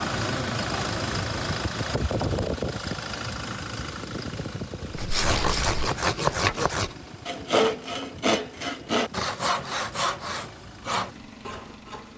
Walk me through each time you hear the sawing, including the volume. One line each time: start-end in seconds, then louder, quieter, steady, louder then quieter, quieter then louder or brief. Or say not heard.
5.0-12.1 quieter.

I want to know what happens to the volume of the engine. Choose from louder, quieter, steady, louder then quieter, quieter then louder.
quieter.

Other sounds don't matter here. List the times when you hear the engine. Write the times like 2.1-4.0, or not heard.
0.0-12.1.